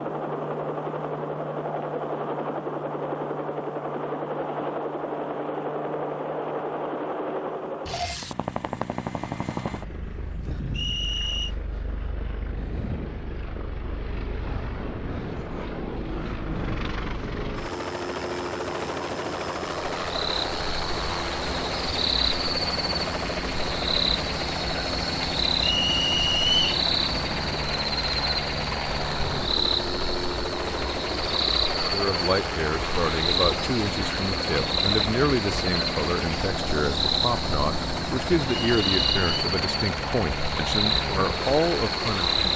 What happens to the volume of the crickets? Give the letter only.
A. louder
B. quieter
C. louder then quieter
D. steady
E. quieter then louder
D.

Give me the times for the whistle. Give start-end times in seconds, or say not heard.
10.7-11.6, 25.6-26.8, 38.7-39.4.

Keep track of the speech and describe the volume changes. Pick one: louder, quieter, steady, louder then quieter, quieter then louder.
steady.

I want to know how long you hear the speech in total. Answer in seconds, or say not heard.
11 s.